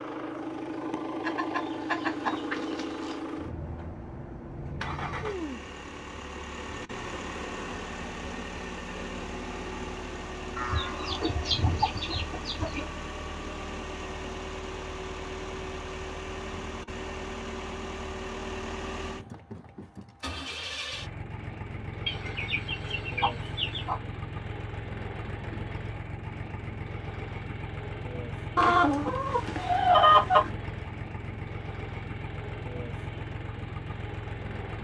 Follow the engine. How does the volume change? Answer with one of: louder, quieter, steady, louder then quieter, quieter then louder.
steady.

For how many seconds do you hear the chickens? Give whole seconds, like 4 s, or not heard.
8 s.